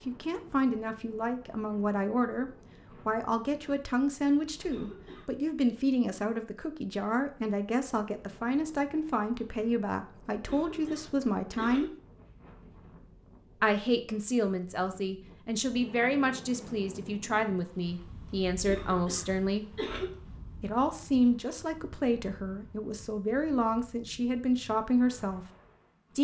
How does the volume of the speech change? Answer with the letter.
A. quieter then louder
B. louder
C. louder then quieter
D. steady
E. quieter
D.